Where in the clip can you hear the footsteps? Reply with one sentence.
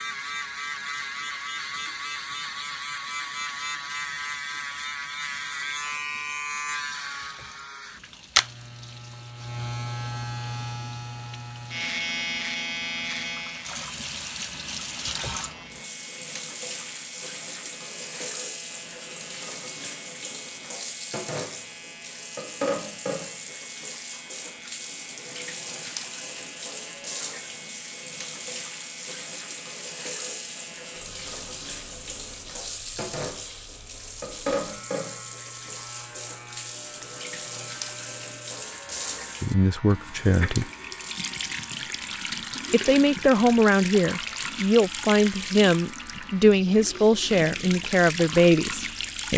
The footsteps can't be heard in this clip.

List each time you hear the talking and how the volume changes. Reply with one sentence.
The talking can be heard briefly from 39.4 to 40.6 s; and from 42.7 to 49.3 s, at a steady volume.